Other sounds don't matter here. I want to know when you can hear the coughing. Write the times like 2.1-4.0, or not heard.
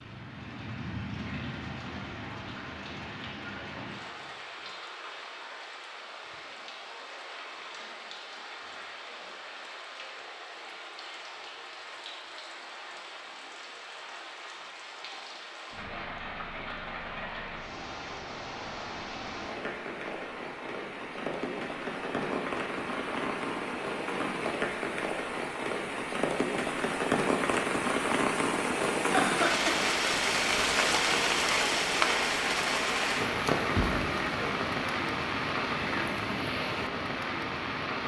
29.1-29.8.